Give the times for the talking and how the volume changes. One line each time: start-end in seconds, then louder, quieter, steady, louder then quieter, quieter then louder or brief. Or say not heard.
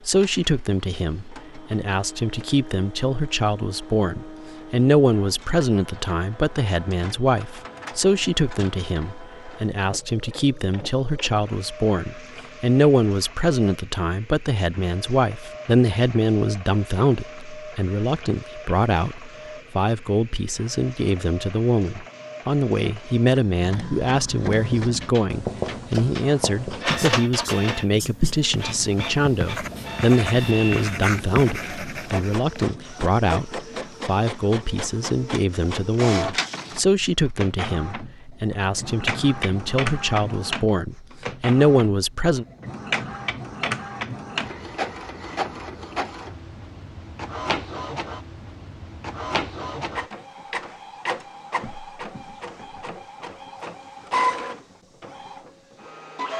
0.1-42.5 steady.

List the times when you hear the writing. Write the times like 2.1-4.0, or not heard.
24.5-32.6.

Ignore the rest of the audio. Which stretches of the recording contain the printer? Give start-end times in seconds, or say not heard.
0.0-56.3.